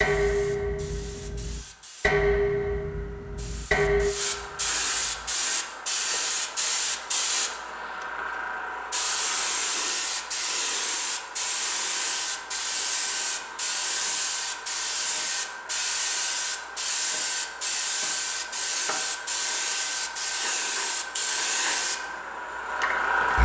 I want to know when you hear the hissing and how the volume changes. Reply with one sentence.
You can hear the hissing from 0.0 to 23.4 s, getting louder.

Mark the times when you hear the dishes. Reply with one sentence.
The dishes can be heard from 0.0 to 5.3 s.